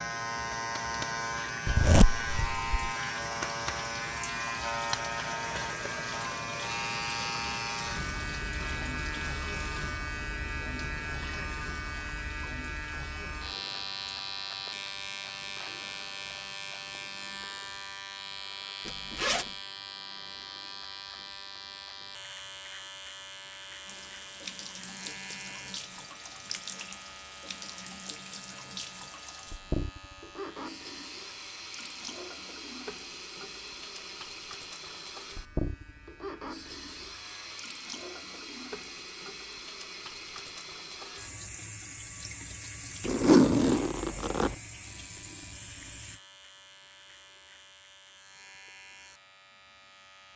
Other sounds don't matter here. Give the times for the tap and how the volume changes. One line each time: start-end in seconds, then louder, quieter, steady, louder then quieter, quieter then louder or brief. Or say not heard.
0.0-17.4 quieter
23.9-46.2 steady.